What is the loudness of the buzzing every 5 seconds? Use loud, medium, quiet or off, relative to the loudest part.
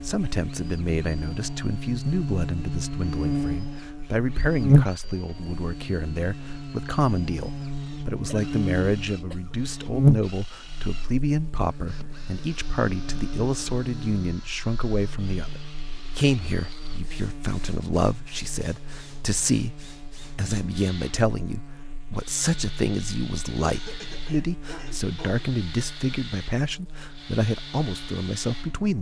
loud, medium, loud, quiet, quiet, quiet.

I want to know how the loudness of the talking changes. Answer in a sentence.
The loudness of the talking stays about the same.